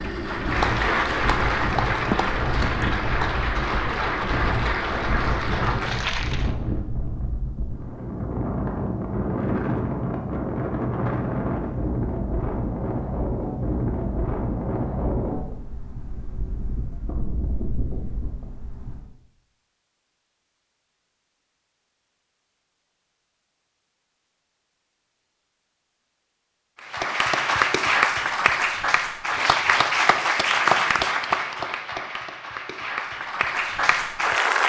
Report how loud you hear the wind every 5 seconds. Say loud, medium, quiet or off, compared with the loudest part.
medium, loud, loud, medium, off, off, off.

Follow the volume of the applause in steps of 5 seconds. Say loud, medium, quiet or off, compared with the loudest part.
loud, medium, off, off, off, loud, loud.